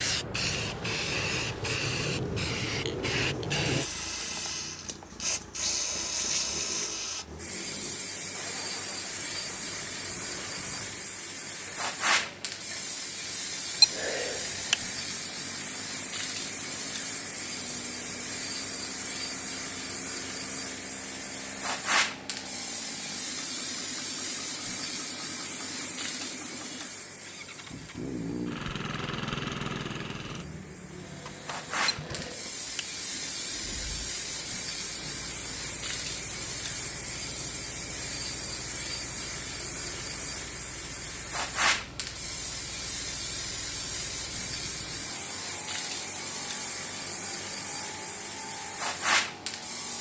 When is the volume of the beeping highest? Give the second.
14 s.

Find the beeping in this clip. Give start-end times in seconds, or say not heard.
13.8-14.8, 31.9-32.9.